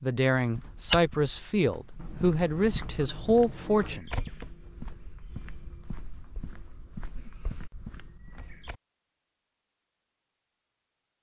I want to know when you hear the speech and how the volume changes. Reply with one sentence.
The speech can be heard from 0.0 to 4.1 s, at a steady volume.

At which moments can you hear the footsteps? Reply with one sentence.
The footsteps can be heard from 0.3 to 8.8 s.